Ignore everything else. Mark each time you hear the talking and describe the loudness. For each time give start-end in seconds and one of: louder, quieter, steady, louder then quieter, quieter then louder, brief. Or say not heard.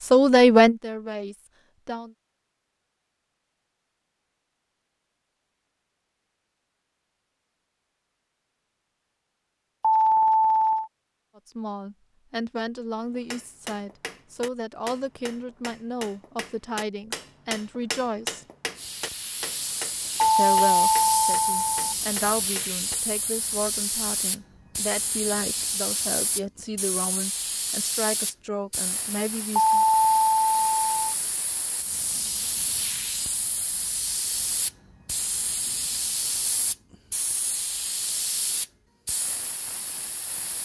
0.1-2.1 brief
11.3-18.4 steady
20.4-29.9 steady.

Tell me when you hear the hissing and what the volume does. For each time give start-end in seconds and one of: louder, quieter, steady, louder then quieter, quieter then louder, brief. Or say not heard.
18.8-40.6 steady.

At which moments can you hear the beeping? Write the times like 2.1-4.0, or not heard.
9.8-10.9, 20.2-21.9, 29.6-30.9.